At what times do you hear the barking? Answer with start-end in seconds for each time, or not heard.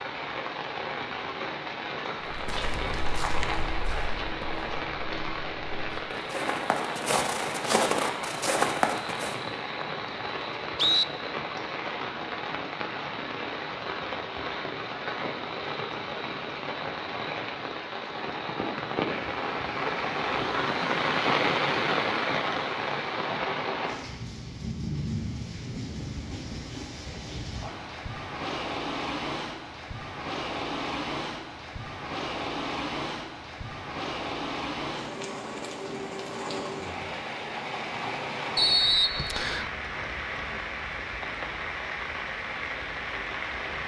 not heard.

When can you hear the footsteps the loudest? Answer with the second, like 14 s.
9 s.